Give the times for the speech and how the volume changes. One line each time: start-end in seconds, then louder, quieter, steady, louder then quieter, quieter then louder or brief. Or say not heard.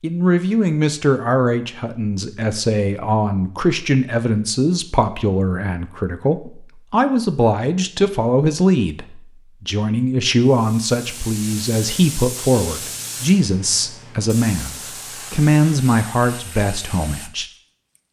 0.0-17.4 steady.